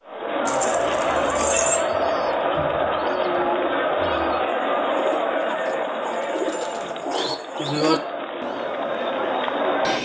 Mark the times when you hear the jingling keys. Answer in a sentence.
The jingling keys can be heard from 0.5 to 1.9 s and from 6.3 to 7.0 s.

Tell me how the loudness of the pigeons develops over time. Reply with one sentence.
The loudness of the pigeons goes up, then down.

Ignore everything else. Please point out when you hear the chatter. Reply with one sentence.
The chatter can be heard from 0.0 to 10.0 s.